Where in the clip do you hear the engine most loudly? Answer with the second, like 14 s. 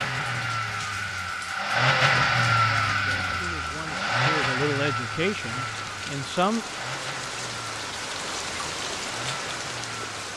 2 s.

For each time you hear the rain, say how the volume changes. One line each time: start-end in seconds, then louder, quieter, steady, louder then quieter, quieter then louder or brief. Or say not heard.
0.0-10.3 louder.